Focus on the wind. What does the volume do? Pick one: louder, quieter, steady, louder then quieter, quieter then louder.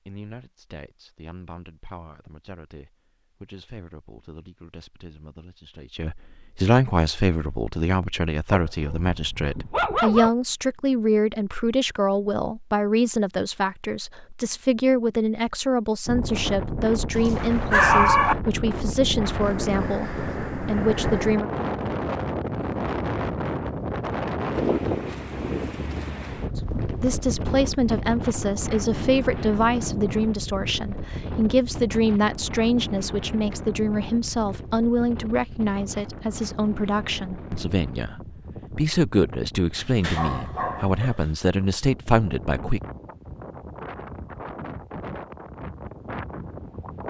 quieter.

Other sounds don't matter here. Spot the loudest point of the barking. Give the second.
18 s.